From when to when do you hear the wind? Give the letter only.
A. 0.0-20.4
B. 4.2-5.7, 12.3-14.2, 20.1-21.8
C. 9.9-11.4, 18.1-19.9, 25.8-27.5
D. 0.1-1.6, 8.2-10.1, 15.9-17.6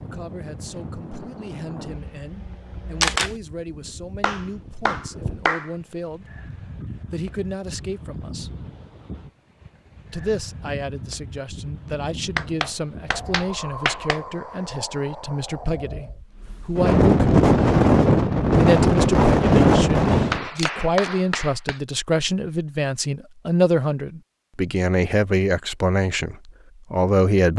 A.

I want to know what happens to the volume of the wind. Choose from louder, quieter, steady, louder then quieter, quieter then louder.
louder.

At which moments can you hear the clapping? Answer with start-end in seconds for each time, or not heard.
4.2-5.7, 12.3-14.2, 20.1-21.8.